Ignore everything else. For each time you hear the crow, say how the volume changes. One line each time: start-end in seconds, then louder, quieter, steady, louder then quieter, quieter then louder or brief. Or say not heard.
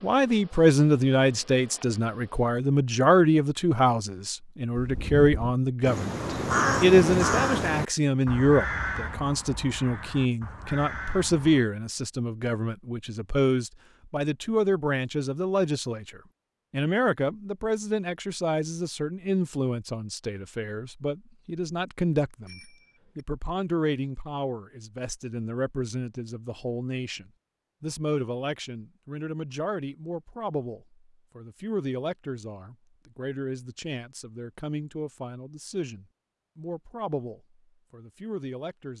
4.7-11.7 louder then quieter.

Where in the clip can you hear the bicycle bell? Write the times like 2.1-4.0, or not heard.
22.4-23.2.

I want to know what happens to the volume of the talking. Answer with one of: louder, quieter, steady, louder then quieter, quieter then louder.
quieter.